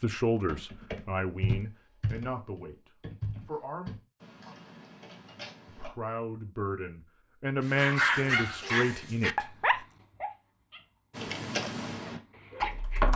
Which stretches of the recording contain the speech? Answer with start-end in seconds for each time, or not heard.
0.0-3.9, 5.7-9.6.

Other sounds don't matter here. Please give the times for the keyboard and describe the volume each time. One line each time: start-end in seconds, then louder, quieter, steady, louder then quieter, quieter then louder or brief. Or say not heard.
0.4-5.9 quieter
11.2-13.1 brief.